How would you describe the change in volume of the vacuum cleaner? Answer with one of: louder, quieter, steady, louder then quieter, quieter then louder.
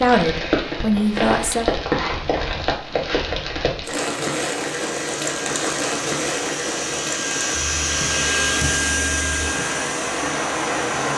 louder then quieter.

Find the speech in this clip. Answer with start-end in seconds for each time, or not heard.
0.0-1.6.